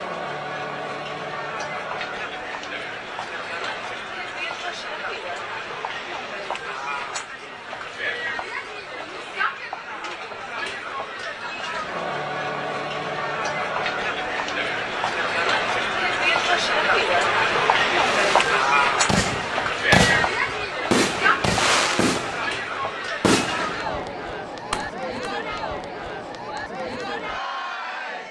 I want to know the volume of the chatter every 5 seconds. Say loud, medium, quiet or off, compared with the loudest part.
medium, medium, medium, loud, medium, medium.